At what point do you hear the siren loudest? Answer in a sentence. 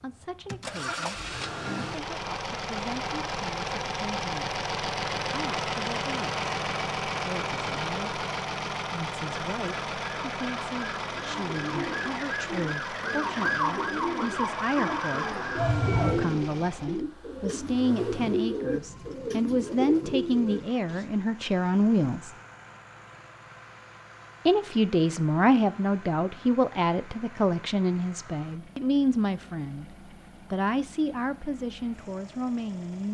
The volume of the siren peaks at 16 seconds.